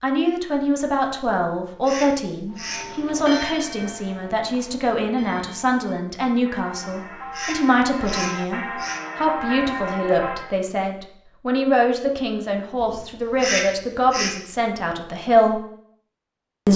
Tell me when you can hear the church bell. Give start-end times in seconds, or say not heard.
2.5-10.6.